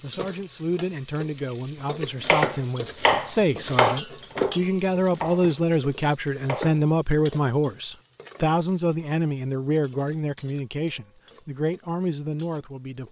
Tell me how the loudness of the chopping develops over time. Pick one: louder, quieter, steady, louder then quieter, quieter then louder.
quieter.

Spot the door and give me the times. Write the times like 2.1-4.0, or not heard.
not heard.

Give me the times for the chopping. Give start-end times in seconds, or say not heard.
2.2-6.8.